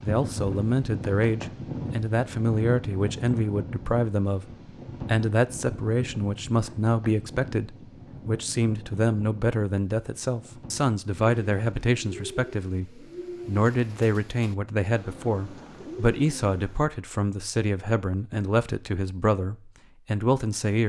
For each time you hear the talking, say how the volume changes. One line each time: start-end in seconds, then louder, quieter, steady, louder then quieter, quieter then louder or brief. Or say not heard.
0.0-4.5 steady
5.0-20.8 steady.